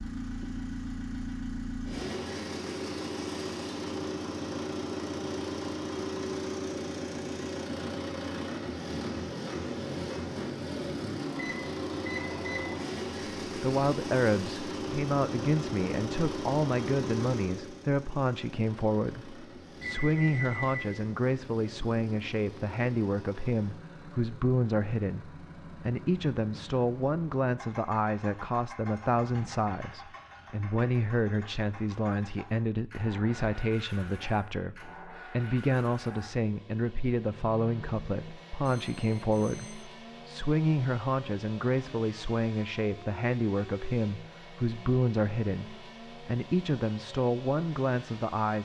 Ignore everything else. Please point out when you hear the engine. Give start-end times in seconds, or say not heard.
0.0-48.6.